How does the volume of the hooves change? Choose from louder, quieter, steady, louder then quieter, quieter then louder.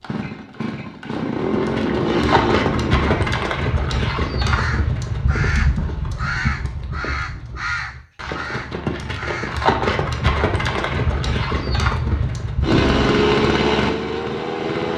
quieter then louder.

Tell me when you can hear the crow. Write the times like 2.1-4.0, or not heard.
4.5-9.7.